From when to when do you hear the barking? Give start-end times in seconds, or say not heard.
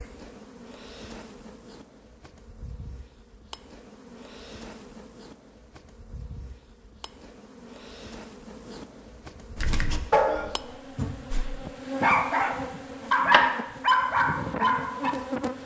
9.6-15.2.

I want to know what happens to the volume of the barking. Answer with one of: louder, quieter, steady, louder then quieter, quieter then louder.
quieter then louder.